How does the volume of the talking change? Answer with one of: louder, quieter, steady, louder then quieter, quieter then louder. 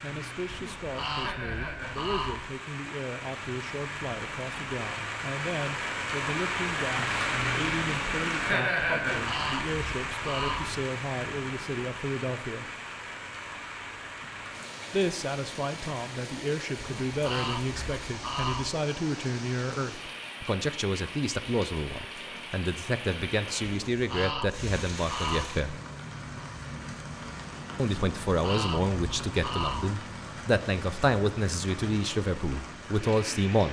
louder.